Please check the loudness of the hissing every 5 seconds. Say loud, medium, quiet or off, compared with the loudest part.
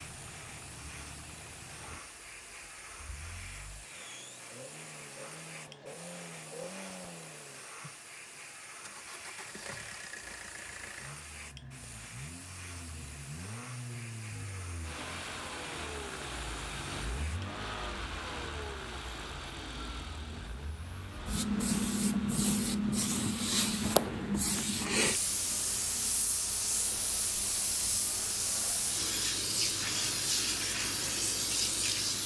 quiet, quiet, quiet, quiet, loud, loud, loud.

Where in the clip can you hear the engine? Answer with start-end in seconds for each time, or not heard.
0.0-32.2.